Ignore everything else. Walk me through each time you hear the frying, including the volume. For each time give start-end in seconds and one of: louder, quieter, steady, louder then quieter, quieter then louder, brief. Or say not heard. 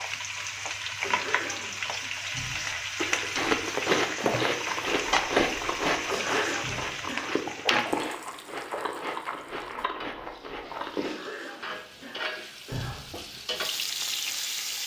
0.0-14.8 quieter then louder.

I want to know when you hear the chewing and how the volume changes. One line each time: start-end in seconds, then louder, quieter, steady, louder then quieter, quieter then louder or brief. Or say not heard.
3.0-11.2 quieter.